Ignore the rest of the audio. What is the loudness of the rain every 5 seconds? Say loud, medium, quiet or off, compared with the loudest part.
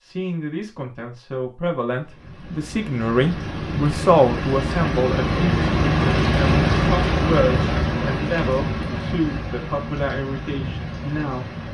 medium, loud, medium.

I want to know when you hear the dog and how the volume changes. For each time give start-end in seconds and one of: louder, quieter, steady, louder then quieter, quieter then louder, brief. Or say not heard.
not heard.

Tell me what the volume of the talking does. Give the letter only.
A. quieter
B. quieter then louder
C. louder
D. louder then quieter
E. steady
D.